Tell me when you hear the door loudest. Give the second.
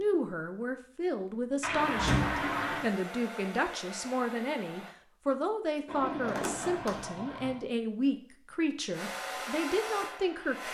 2 s.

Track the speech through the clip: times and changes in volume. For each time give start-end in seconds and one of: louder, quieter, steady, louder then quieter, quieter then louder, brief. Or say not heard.
0.0-10.6 steady.